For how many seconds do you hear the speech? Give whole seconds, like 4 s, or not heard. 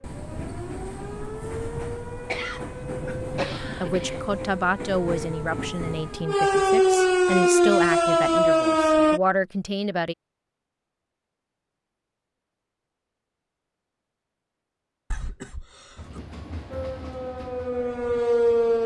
6 s.